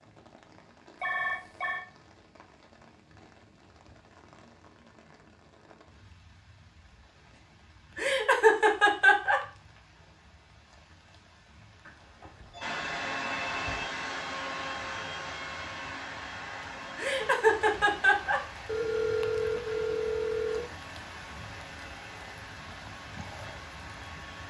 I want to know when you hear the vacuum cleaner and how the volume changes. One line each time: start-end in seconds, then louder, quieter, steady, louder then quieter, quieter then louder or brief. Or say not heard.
12.6-24.4 quieter.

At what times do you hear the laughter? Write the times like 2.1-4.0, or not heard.
8.0-9.4, 16.9-18.4.